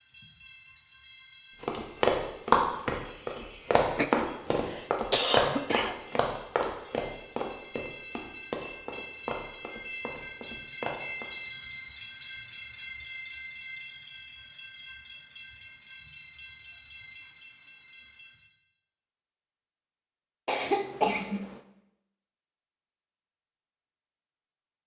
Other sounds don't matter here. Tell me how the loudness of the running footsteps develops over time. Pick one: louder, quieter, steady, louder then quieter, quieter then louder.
quieter.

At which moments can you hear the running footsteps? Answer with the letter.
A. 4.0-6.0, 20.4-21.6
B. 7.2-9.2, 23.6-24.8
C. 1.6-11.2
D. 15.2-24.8
C.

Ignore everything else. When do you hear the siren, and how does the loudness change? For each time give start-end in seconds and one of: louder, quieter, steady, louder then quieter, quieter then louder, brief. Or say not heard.
not heard.